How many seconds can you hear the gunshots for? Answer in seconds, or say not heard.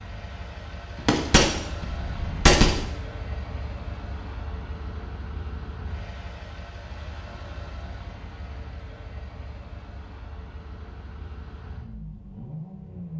2 s.